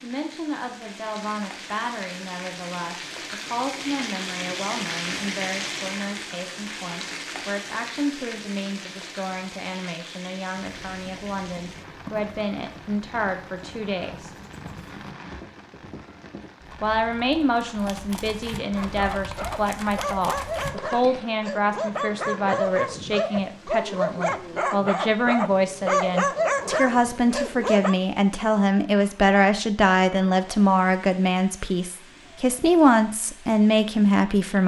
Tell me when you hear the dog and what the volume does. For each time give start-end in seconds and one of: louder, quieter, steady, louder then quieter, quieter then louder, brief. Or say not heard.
18.8-27.9 louder.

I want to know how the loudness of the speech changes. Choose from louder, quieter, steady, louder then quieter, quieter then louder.
louder.